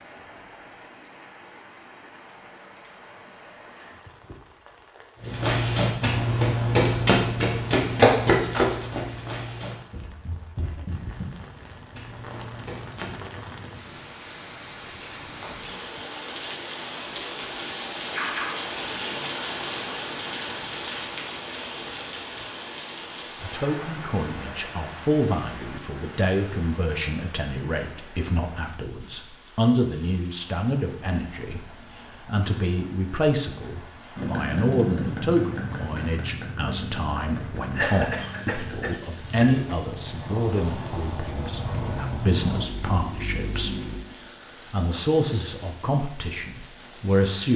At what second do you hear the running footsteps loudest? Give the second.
8 s.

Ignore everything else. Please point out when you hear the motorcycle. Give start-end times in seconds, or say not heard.
34.1-44.0.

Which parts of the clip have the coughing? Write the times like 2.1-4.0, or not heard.
37.8-39.5.